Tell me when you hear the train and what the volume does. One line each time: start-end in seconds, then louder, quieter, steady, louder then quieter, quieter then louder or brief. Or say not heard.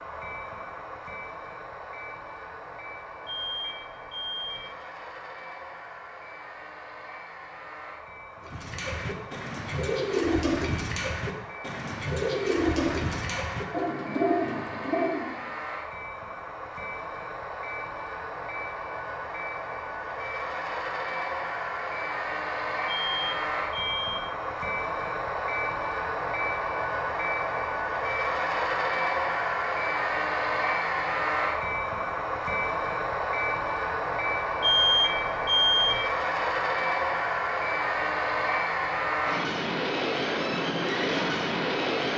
0.0-42.1 louder.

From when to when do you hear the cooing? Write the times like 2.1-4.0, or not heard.
8.4-15.4.